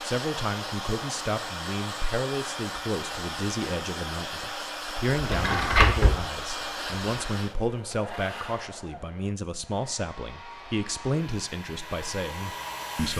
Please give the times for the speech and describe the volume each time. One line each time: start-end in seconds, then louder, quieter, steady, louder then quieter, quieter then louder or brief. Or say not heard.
0.0-13.1 steady.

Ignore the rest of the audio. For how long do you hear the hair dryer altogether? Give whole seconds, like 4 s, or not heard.
13 s.